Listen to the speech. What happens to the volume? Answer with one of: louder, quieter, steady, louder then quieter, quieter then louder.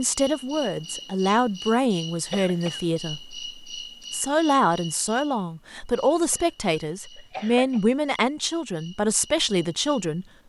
steady.